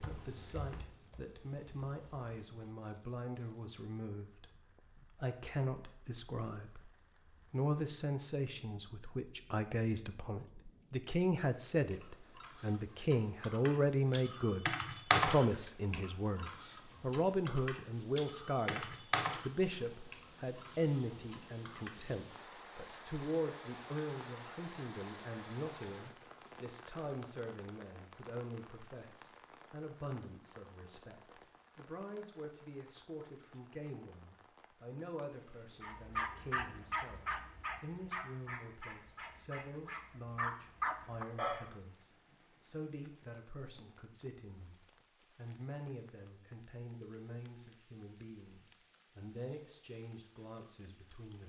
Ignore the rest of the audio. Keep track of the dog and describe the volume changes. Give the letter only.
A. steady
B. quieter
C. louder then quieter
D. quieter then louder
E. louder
D.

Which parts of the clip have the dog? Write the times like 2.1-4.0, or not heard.
35.8-41.7.